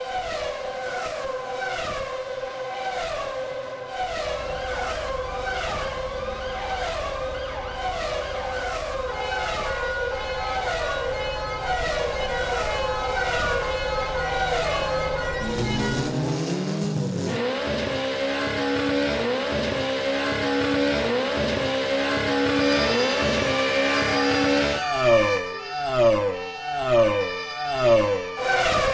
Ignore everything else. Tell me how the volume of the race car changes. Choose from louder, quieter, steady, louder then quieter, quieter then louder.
louder.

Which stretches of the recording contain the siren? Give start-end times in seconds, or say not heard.
4.2-16.1, 22.4-28.7.